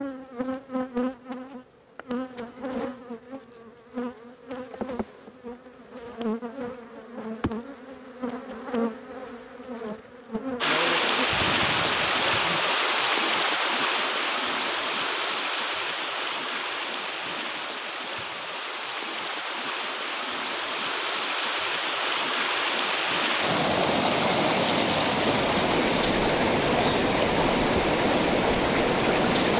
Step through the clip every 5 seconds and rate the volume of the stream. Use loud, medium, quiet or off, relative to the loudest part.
off, off, loud, medium, loud, loud.